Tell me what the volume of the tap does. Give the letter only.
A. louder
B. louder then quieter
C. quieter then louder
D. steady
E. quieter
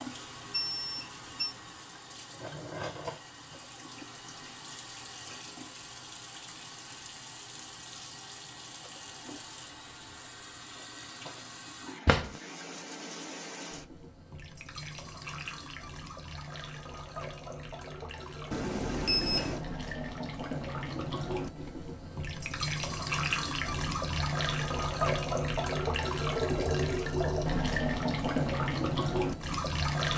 A.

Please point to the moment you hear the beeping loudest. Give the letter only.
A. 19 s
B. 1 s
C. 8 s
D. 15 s
A.